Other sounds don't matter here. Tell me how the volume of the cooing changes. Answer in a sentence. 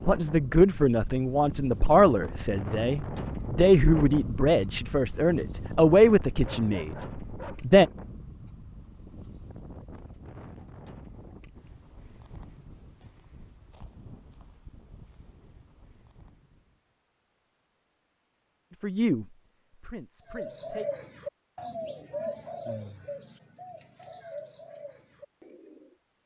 The volume of the cooing goes down.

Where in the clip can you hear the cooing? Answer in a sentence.
You can hear the cooing from 20.2 to 25.9 s.